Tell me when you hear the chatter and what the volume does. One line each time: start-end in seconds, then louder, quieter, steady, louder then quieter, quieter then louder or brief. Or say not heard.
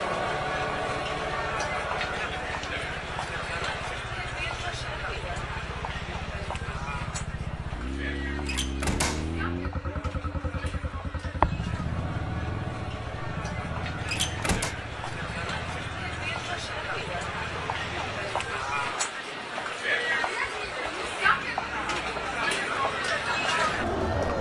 0.0-24.3 quieter then louder.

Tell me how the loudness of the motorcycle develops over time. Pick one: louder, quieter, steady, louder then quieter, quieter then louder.
louder then quieter.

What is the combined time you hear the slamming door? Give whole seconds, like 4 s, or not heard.
2 s.